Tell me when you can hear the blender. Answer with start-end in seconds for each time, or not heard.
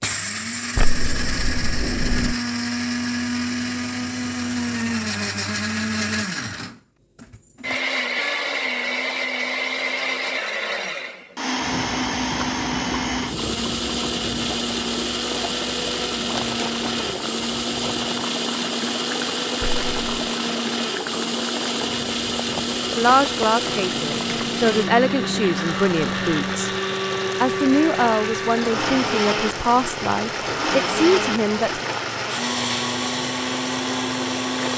0.0-34.7.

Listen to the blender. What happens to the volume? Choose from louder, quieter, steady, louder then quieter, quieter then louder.
steady.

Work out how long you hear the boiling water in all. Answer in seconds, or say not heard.
23 s.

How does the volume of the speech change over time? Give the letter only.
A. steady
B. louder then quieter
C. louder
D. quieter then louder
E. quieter
A.